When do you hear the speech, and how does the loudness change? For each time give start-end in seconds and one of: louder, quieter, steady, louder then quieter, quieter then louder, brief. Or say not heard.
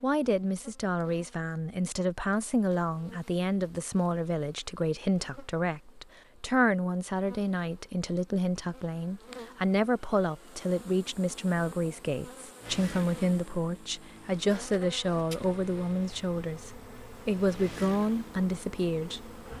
0.0-19.4 steady.